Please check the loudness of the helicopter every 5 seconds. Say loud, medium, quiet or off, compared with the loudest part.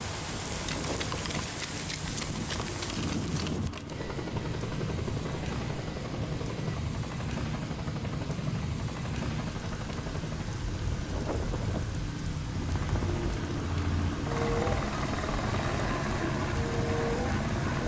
medium, medium, loud, loud.